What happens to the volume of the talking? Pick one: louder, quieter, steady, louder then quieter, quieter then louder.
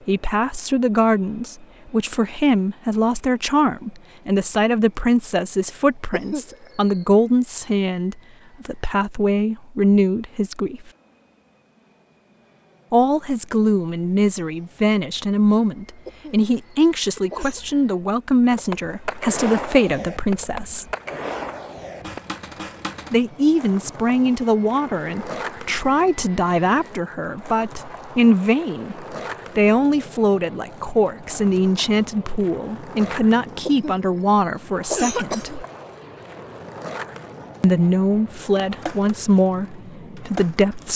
steady.